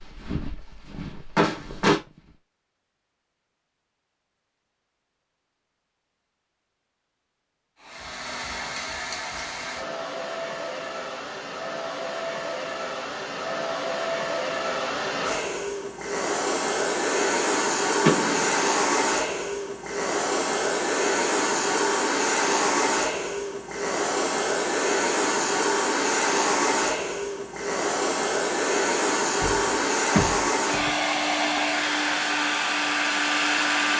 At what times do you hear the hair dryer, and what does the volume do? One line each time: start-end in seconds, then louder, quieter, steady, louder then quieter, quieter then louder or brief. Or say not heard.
7.8-33.9 louder.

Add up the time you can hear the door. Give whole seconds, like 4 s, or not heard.
3 s.